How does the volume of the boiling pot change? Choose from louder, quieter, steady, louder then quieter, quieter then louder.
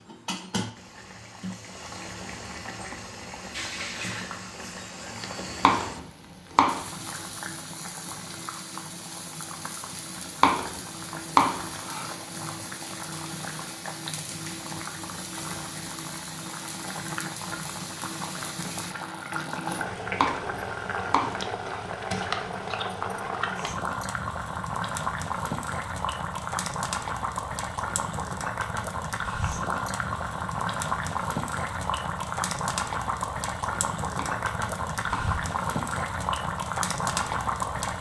louder.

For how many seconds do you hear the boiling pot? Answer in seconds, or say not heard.
38 s.